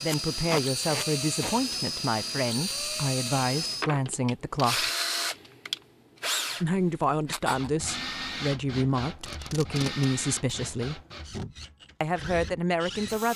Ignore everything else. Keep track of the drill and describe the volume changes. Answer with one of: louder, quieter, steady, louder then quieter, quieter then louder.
quieter.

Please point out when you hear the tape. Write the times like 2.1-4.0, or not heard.
0.1-1.6, 9.2-10.6.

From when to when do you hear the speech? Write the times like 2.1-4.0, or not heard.
0.0-4.9, 6.6-11.0, 12.0-13.3.